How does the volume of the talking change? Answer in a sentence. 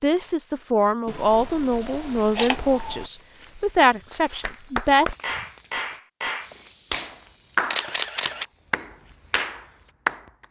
The loudness of the talking stays about the same.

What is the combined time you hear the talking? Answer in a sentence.
The talking can be heard for 5 seconds in total.